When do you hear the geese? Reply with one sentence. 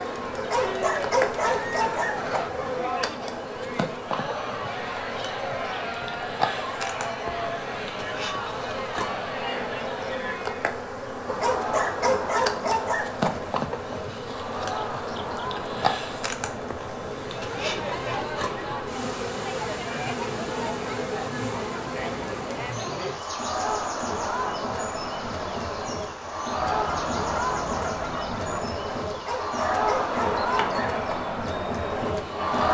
You can hear the geese from 1.4 to 2.8 s and from 26.6 to 28.6 s.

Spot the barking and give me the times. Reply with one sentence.
The barking can be heard from 0.3 to 2.4 s, from 11.2 to 13.3 s and from 29.1 to 31.0 s.